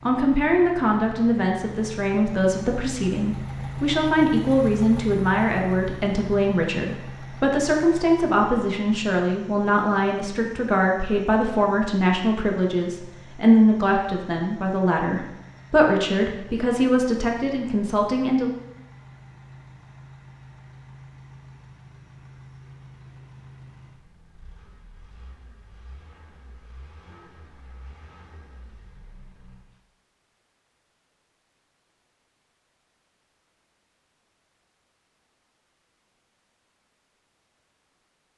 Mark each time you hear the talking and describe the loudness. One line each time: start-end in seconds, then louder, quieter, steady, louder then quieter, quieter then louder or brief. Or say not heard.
0.1-18.5 steady.